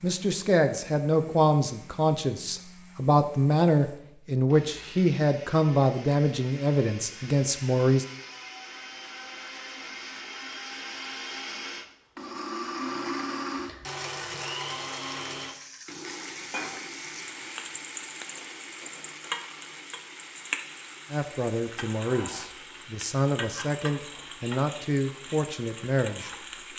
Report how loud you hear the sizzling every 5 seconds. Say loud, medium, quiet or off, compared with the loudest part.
off, off, off, loud, loud, loud.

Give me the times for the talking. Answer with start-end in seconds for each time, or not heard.
0.0-8.1, 21.1-26.4.